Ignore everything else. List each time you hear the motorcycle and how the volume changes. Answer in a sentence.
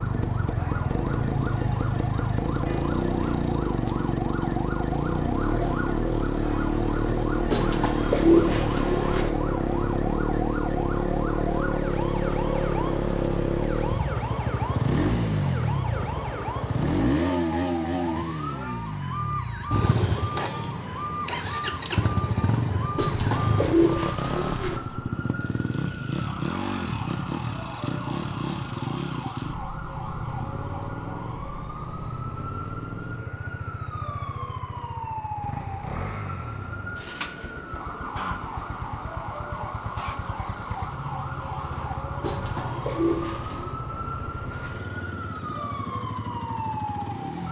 The motorcycle can be heard from 0.0 to 47.4 s, getting quieter.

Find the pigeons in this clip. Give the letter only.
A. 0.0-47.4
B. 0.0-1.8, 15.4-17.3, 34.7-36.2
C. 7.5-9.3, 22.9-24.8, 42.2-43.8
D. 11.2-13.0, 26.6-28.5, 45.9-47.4
C.